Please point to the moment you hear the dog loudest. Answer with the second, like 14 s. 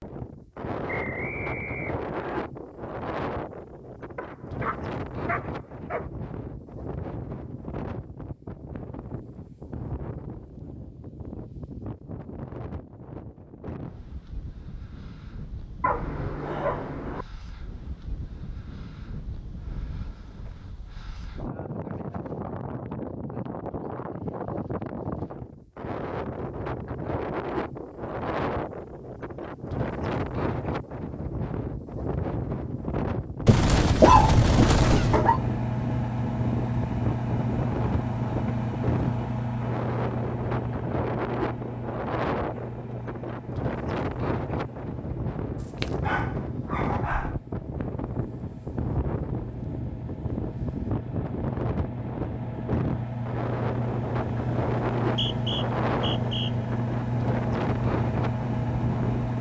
34 s.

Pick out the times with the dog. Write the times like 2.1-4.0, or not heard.
4.2-6.1, 15.8-17.2, 33.5-35.4, 45.6-47.4.